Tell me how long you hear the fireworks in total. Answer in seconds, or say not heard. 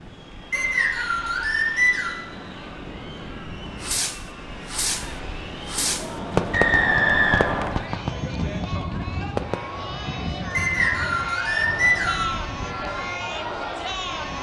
6 s.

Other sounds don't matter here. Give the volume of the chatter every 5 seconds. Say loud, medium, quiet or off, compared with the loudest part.
quiet, medium, loud.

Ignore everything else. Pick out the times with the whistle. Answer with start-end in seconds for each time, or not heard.
0.5-2.2, 6.5-7.7, 10.5-12.3.